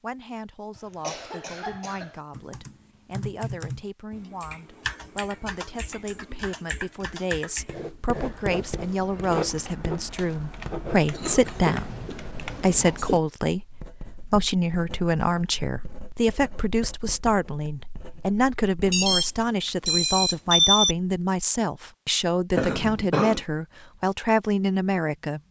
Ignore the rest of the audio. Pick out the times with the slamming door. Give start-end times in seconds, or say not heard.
not heard.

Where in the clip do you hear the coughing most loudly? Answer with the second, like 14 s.
23 s.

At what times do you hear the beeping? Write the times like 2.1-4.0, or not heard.
18.9-20.9.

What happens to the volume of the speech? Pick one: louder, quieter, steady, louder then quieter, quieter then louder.
louder.